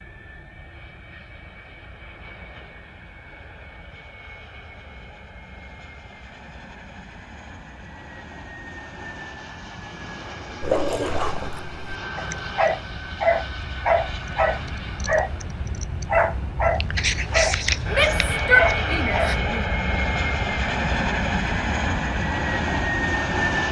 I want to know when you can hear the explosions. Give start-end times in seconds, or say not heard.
not heard.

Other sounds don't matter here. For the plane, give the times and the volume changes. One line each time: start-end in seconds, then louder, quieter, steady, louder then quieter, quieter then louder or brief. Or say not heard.
0.0-23.6 louder.